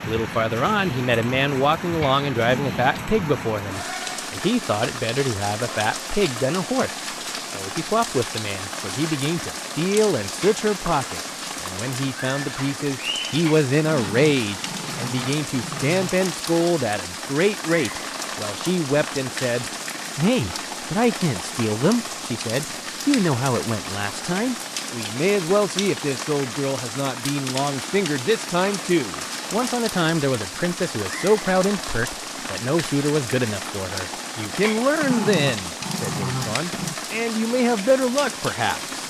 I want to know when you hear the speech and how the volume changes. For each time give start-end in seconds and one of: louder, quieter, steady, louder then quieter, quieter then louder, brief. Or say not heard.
0.1-38.8 steady.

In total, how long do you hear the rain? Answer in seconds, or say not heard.
39 s.